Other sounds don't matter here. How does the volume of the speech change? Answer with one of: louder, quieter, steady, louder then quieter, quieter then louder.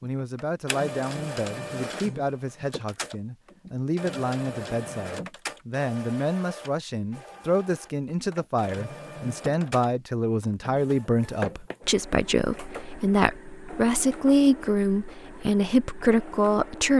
louder.